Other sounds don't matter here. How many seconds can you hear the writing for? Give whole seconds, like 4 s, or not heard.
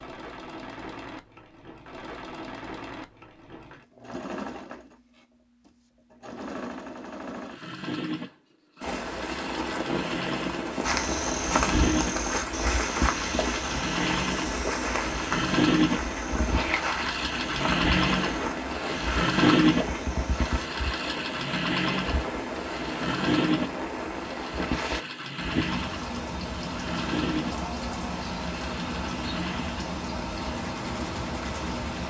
not heard.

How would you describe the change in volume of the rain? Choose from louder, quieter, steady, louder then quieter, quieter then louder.
steady.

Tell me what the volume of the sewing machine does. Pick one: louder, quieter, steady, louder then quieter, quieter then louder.
louder then quieter.